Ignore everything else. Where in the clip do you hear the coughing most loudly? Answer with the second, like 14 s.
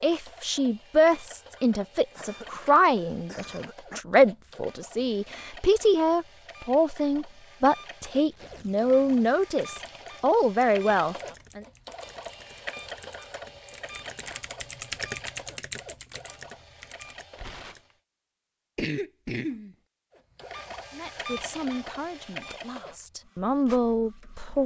19 s.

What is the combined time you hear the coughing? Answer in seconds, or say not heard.
3 s.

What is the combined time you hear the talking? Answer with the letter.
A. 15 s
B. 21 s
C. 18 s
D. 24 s
A.